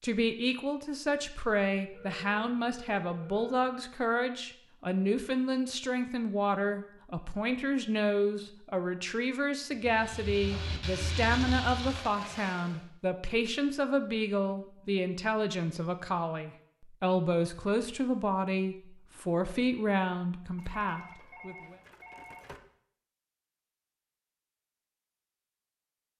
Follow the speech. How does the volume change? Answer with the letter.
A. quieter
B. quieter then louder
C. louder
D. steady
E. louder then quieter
D.